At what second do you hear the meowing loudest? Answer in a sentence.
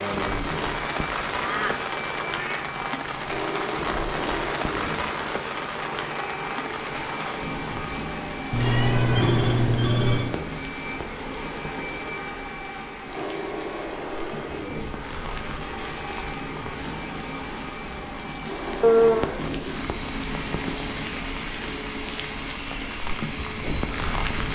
The loudest moment of the meowing is at 19 seconds.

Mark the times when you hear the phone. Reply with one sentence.
The phone can be heard from 9.2 to 10.3 s.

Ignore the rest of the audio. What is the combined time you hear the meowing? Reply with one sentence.
The meowing can be heard for 4 seconds in total.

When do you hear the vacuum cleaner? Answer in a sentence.
The vacuum cleaner can be heard from 0.0 to 24.5 s.